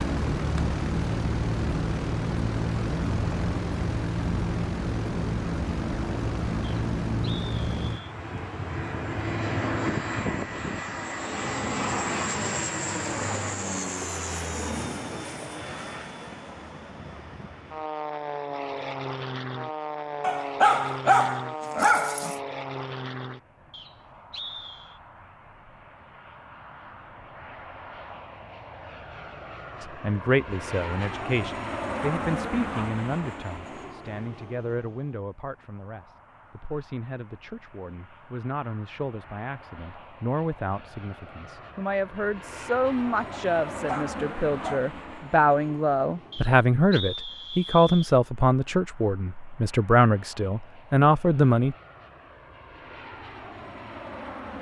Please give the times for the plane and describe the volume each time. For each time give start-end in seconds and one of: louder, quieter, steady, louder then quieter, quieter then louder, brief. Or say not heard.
0.0-54.5 quieter.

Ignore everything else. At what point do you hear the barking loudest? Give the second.
21 s.